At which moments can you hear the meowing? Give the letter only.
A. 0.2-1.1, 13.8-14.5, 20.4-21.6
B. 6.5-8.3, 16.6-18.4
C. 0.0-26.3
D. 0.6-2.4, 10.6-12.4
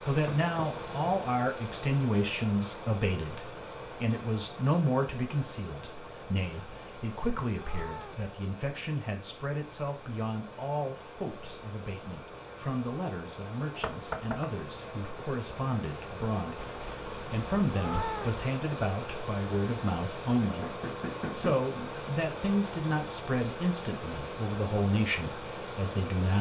B.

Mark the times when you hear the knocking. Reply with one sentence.
You can hear the knocking from 0.2 to 1.1 s, from 13.8 to 14.5 s and from 20.4 to 21.6 s.